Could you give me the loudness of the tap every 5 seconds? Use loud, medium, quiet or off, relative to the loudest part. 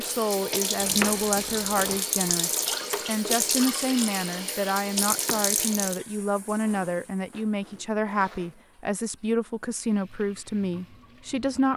loud, medium, quiet.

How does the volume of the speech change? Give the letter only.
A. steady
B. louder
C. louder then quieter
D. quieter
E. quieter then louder
A.